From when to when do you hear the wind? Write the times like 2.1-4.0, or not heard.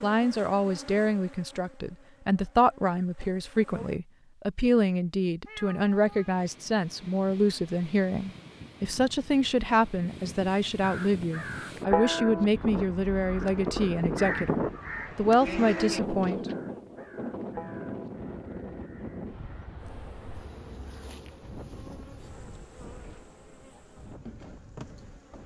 5.8-25.4.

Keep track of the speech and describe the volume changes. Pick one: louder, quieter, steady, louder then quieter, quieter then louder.
steady.